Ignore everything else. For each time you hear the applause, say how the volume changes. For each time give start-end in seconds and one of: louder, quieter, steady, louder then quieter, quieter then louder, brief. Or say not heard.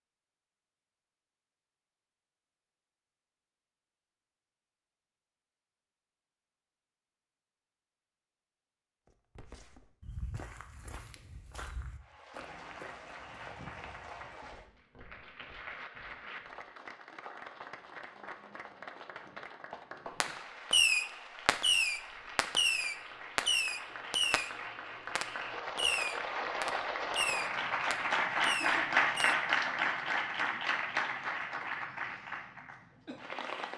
12.0-33.7 louder.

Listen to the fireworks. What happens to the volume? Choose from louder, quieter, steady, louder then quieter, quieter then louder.
quieter.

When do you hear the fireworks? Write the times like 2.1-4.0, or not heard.
20.2-29.4.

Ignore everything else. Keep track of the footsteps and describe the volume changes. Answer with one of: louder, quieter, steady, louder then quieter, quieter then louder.
quieter.